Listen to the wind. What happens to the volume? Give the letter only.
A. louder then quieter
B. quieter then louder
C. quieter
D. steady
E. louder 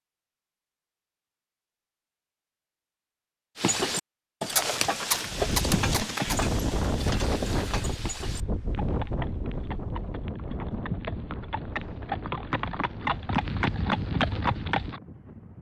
C.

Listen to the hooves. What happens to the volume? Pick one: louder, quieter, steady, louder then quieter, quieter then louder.
quieter then louder.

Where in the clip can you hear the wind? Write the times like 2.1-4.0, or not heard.
5.2-15.5.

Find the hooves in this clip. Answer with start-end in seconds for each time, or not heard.
3.5-15.0.